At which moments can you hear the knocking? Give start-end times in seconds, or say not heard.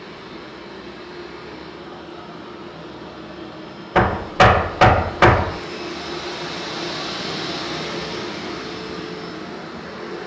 4.0-5.6.